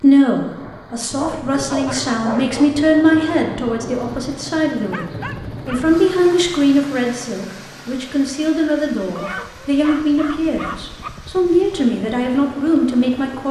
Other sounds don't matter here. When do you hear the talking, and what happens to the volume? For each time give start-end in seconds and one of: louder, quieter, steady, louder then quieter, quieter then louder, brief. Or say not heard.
0.0-13.4 steady.